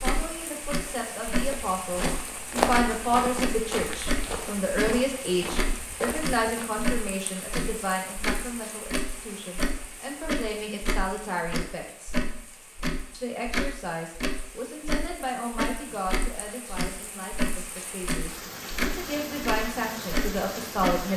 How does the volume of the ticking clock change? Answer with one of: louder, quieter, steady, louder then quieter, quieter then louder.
steady.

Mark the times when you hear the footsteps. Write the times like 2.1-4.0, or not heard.
1.4-6.7.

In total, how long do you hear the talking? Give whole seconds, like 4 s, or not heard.
20 s.